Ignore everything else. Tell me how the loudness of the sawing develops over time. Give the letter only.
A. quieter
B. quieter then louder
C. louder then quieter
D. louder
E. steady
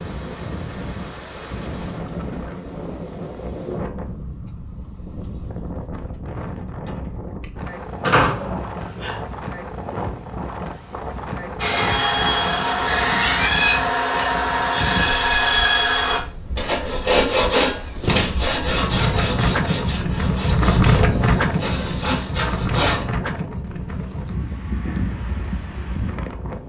A.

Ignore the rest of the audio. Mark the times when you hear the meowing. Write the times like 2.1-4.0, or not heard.
12.6-13.7.